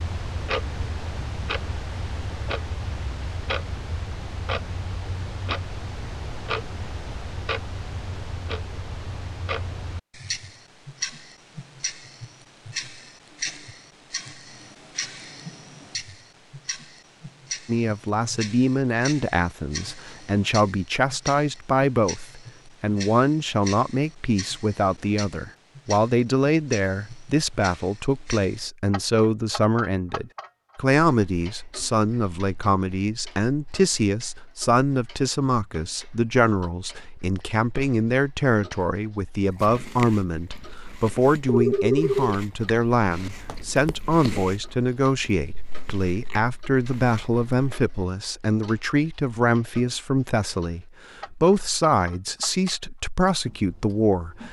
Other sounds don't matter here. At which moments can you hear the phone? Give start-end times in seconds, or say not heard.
41.5-42.4.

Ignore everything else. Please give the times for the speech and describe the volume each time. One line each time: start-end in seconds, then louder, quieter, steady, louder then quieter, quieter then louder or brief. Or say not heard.
17.6-54.4 steady.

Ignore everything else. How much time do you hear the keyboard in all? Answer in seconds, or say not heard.
not heard.